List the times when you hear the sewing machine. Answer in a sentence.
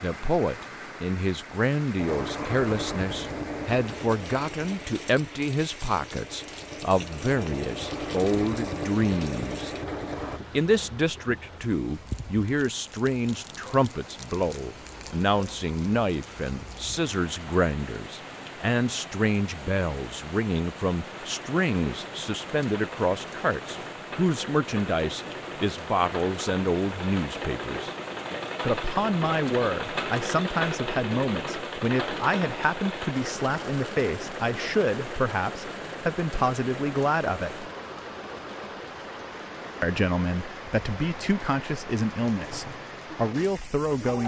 You can hear the sewing machine from 1.9 to 10.4 s and from 20.9 to 44.2 s.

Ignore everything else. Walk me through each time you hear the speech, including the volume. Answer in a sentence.
The speech can be heard from 0.0 to 9.7 s, at a steady volume; from 10.5 to 27.9 s, at a steady volume; from 28.6 to 37.7 s, at a steady volume; and from 39.8 to 44.2 s, getting quieter then louder.